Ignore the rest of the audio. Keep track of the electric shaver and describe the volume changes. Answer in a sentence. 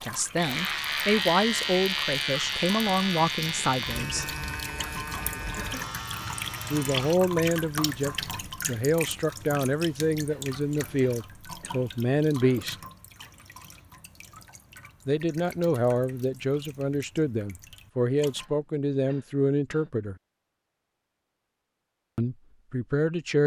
The loudness of the electric shaver goes down.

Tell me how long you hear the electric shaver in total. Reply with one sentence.
The electric shaver can be heard for 7 seconds in total.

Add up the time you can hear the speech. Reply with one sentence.
You can hear the speech for 17 seconds altogether.